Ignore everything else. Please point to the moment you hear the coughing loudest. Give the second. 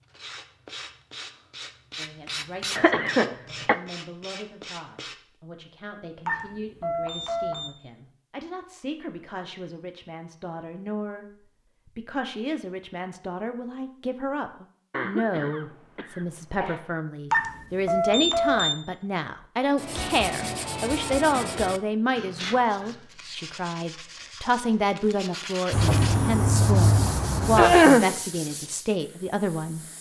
28 s.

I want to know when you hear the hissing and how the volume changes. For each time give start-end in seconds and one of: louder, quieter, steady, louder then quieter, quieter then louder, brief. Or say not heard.
25.7-29.9 quieter.